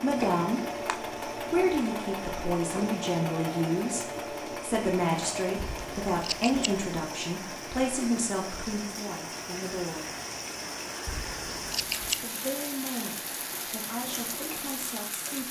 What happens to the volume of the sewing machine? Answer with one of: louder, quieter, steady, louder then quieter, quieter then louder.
quieter.